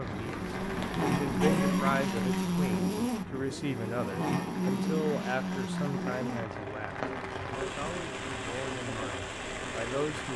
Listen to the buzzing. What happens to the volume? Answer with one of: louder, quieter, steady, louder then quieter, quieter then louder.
quieter.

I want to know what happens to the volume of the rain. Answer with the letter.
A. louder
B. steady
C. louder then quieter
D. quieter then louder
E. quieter
D.